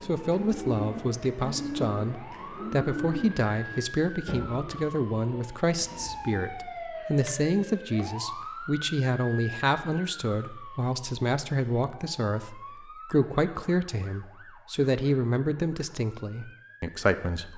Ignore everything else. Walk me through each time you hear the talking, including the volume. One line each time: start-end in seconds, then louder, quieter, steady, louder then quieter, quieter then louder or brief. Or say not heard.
0.0-17.5 steady.